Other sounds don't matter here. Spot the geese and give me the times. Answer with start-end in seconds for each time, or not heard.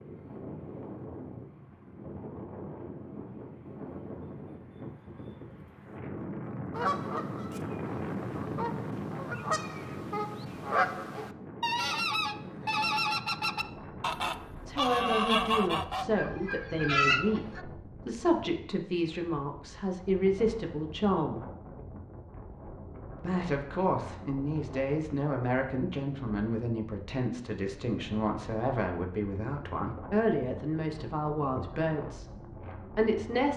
6.7-17.6.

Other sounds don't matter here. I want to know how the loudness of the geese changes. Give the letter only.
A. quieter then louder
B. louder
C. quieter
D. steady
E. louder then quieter
B.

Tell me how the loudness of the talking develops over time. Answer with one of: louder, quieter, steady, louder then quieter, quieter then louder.
steady.